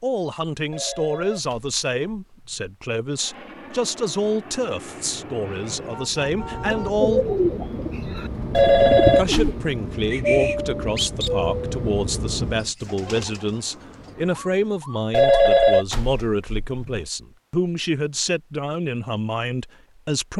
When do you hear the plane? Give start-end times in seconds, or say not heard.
3.1-12.7.